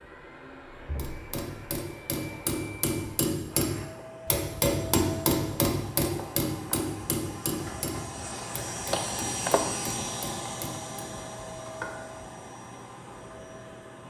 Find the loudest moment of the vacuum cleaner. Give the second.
9 s.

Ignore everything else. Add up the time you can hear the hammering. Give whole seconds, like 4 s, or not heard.
10 s.